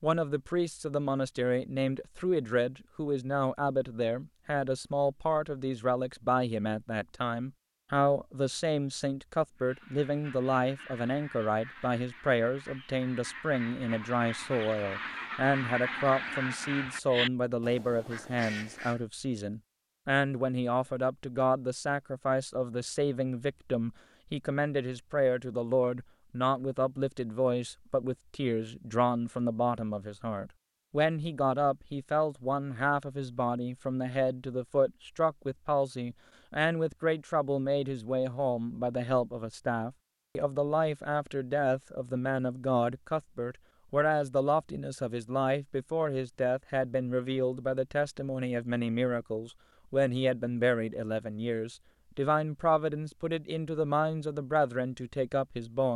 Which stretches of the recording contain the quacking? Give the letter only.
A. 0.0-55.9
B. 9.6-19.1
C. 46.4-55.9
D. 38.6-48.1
B.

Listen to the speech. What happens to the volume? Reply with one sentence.
The volume of the speech stays about the same.